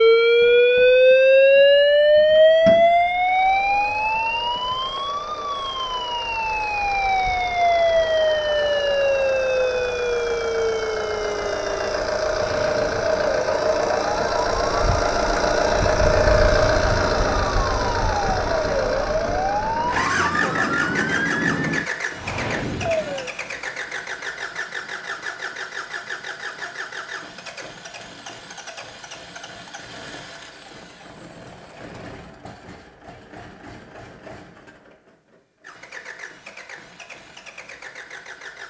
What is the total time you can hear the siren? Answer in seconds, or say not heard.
23 s.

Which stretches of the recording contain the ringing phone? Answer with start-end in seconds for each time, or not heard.
not heard.